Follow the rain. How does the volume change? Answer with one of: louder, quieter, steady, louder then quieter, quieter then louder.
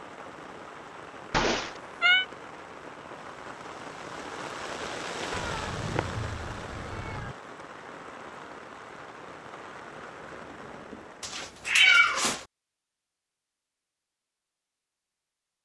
louder then quieter.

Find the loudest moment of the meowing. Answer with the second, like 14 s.
12 s.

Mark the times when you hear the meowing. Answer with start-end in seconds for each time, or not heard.
1.3-2.2, 5.3-7.3, 11.2-12.4.